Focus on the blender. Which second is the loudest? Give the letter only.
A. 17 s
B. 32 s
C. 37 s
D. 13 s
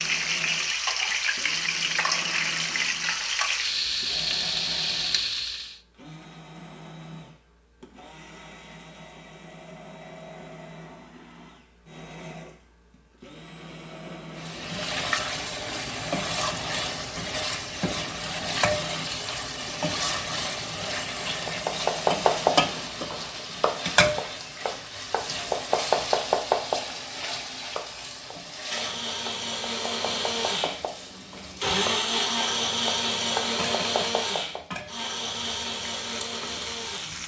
B.